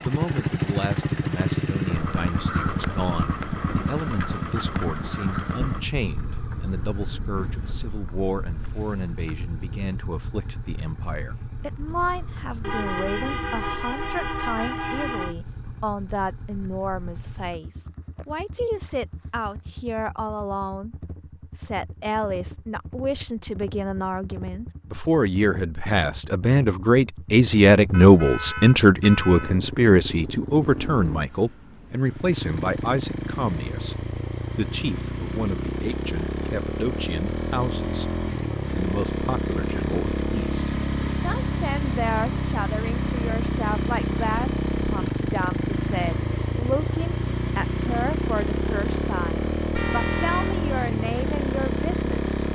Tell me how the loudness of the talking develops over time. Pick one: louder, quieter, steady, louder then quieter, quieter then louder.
louder then quieter.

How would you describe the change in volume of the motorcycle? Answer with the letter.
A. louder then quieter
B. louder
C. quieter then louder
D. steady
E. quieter
C.